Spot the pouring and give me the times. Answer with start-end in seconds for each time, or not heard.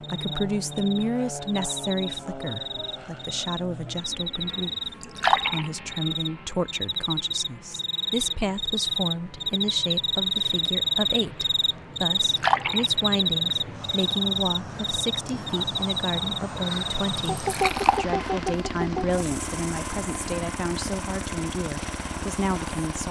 5.0-5.7, 12.2-13.1, 17.4-18.1.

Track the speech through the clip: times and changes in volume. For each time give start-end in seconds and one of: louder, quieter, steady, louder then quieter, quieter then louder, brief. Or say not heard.
0.0-23.0 steady.